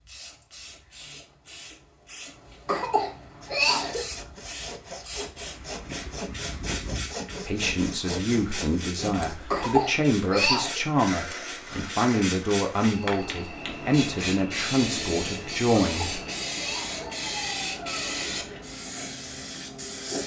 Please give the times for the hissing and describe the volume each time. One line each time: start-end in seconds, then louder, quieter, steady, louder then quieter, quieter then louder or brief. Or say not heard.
0.0-20.2 louder.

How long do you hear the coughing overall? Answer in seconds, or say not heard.
4 s.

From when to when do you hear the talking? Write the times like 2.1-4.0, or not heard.
7.5-16.2.